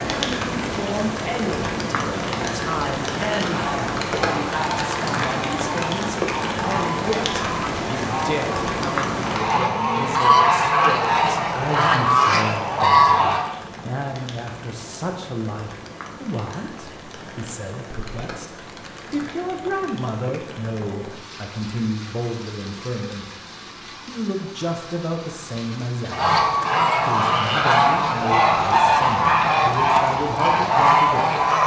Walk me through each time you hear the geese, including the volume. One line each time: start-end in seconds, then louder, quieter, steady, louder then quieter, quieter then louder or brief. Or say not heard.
3.4-13.4 louder
26.1-31.6 steady.